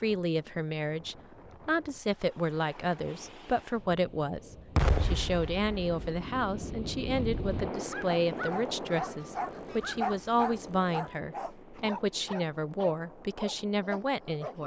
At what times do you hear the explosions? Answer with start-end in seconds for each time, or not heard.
4.8-6.2.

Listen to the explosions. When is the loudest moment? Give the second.
5 s.